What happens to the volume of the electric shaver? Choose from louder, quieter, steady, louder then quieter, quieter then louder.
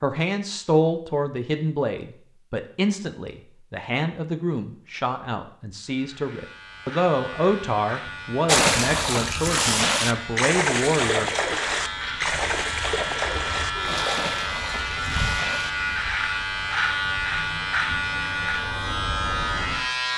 louder.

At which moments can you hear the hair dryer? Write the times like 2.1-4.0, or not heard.
not heard.